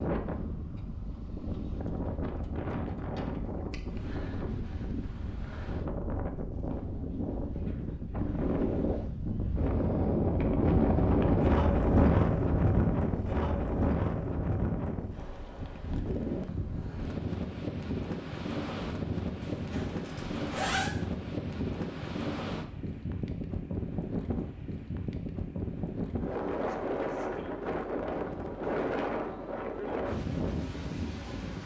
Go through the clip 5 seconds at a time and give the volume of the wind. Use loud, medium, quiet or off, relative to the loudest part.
medium, medium, loud, medium, medium, medium, medium.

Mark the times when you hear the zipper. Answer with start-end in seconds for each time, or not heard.
19.4-20.9.